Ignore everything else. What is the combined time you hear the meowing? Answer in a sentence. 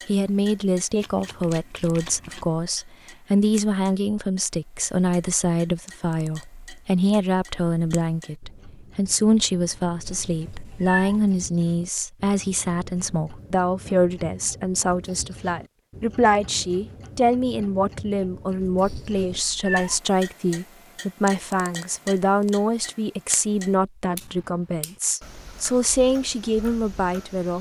The meowing can be heard for 2 seconds in total.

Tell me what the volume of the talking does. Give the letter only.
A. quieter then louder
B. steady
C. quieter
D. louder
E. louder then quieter
B.